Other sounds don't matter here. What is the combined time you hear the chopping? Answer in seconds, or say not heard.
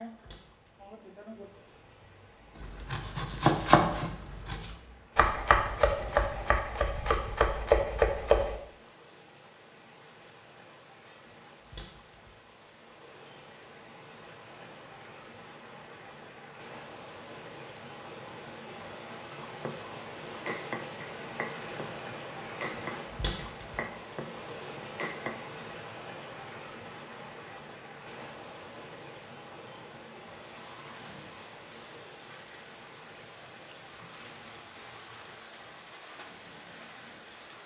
12 s.